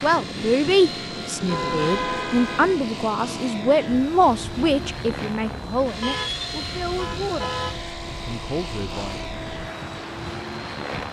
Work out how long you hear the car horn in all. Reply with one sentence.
The car horn can be heard for 3 seconds in total.